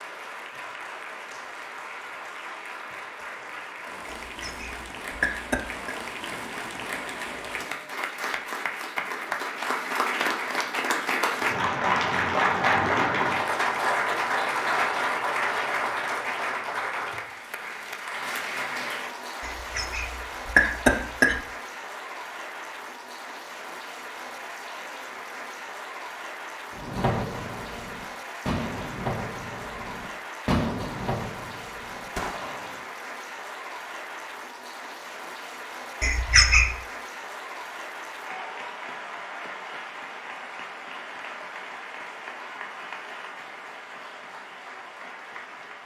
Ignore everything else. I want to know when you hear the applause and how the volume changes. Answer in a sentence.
The applause can be heard from 0.0 to 45.8 s, getting louder then quieter.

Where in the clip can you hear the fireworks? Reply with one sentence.
You can hear the fireworks from 26.8 to 32.9 s.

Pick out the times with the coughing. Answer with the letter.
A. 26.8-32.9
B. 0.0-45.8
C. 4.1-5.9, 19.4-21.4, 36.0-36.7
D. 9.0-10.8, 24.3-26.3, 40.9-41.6
C.